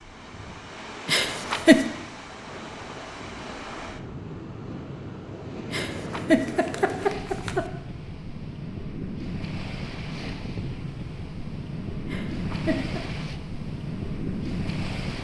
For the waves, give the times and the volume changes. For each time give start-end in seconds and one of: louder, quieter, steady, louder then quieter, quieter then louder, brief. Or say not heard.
0.0-15.2 louder.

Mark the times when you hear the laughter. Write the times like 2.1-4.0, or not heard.
1.1-1.9, 5.7-7.7, 12.1-13.0.